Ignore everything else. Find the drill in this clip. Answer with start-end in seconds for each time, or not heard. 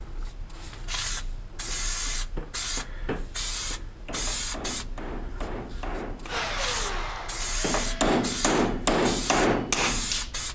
6.2-8.2.